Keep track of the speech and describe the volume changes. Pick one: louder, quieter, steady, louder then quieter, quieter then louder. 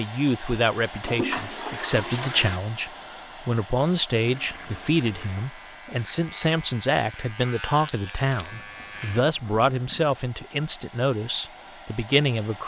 steady.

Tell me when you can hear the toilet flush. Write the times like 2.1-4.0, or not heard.
1.0-2.6, 4.2-5.5, 8.6-10.2.